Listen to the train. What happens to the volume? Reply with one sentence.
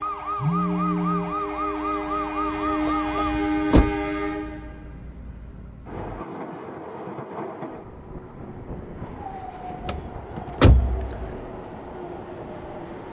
The volume of the train goes down.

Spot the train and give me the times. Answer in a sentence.
You can hear the train from 0.0 to 13.0 s.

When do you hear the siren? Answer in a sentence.
The siren can be heard from 0.0 to 3.4 s.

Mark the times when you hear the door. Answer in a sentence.
You can hear the door from 2.9 to 4.0 s and from 9.8 to 11.3 s.